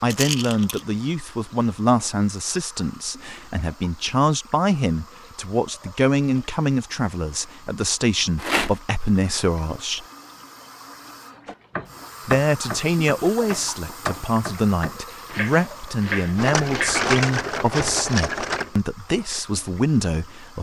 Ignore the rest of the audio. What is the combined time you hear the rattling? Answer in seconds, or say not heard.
4 s.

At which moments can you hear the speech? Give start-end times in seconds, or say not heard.
0.0-10.1, 12.2-20.5.